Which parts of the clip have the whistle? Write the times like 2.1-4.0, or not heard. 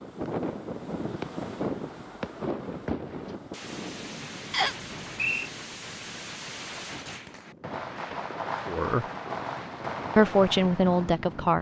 4.5-5.5.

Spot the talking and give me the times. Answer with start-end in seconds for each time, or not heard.
8.7-9.1, 10.2-11.5.